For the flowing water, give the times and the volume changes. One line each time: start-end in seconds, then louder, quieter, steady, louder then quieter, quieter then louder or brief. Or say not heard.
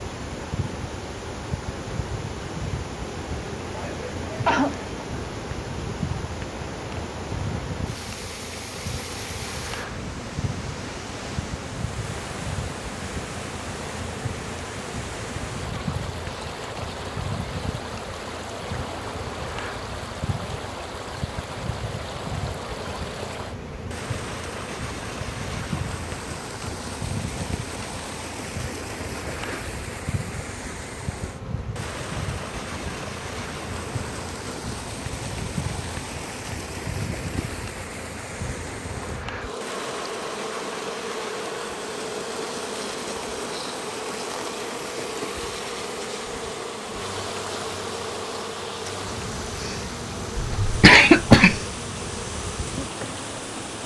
0.0-53.8 steady.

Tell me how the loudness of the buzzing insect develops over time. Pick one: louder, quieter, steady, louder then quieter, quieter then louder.
steady.